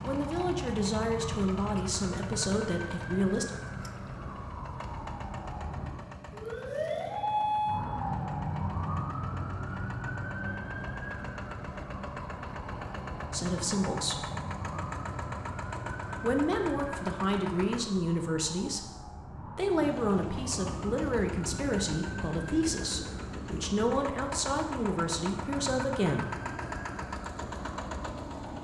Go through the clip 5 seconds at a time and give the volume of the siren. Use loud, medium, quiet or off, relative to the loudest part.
medium, loud, medium, medium, medium, medium.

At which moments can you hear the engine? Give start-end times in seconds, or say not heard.
0.0-17.9, 19.8-28.5.